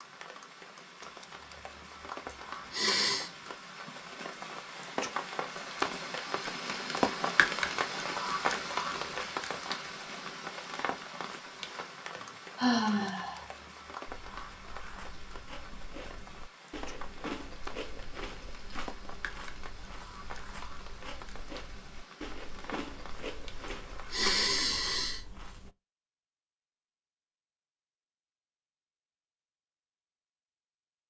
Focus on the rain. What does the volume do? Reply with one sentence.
The volume of the rain goes up, then down.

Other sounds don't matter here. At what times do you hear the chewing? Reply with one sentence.
The chewing can be heard from 14.1 to 25.7 s.